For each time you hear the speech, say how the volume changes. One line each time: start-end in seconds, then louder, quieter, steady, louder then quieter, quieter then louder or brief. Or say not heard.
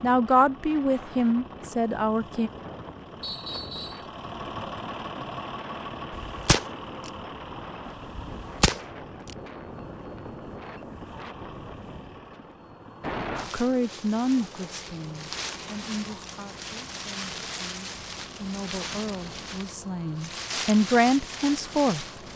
0.0-2.5 brief
13.5-22.3 quieter then louder.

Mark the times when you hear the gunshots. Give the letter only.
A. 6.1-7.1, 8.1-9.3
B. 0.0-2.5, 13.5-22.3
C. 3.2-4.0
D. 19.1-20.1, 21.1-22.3
A.